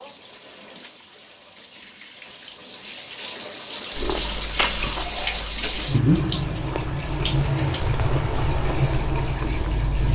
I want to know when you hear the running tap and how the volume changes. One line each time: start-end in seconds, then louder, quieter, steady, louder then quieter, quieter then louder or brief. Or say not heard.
0.0-10.0 louder.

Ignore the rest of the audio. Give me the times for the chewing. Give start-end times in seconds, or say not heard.
3.9-10.0.